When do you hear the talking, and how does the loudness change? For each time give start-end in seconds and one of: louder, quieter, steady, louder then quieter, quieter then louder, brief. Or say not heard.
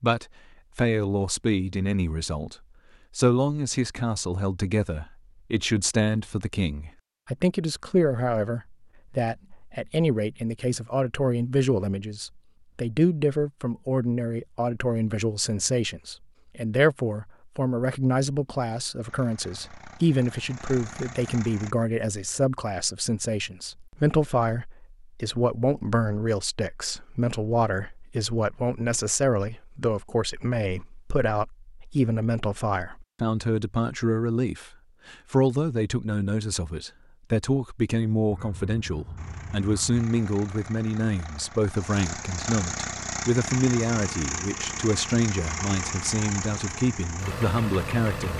0.0-2.5 brief
3.1-48.3 steady.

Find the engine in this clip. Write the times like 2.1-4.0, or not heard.
19.1-21.8, 39.1-48.3.